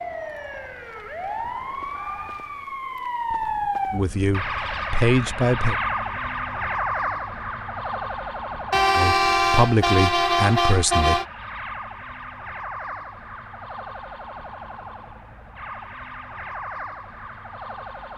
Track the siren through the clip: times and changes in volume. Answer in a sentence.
You can hear the siren from 0.0 to 18.1 s, getting quieter.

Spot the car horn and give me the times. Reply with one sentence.
You can hear the car horn from 8.7 to 11.2 s.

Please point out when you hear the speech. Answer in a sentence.
The speech can be heard from 3.9 to 5.8 s and from 8.9 to 11.2 s.